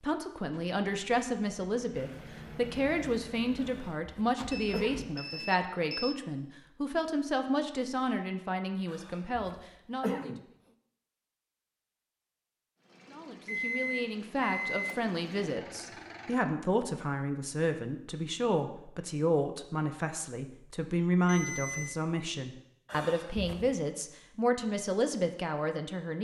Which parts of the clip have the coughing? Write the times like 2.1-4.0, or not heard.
3.6-5.5, 8.9-10.4, 22.9-23.8.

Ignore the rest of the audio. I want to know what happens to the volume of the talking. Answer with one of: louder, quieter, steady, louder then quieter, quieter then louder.
steady.